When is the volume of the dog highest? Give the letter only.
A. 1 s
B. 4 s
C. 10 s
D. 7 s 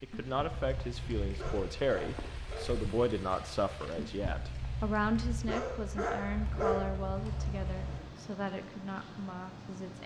D.